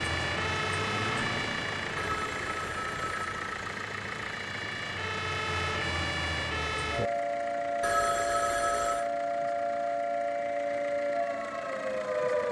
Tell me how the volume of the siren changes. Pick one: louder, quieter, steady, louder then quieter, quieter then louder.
quieter then louder.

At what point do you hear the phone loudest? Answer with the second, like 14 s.
8 s.